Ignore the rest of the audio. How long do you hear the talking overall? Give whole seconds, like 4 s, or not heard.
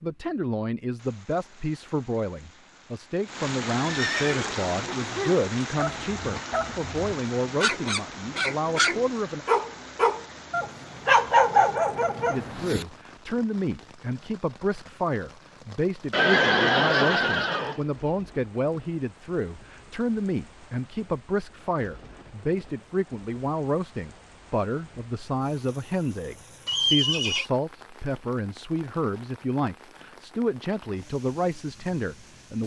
30 s.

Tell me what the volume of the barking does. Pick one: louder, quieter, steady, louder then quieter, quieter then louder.
louder.